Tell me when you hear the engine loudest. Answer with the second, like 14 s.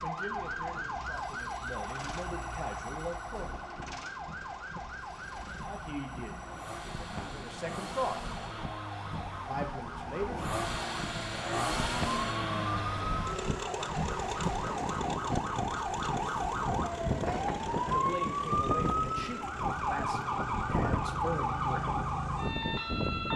12 s.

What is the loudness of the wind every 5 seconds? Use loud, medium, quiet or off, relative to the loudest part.
quiet, medium, loud, loud, loud.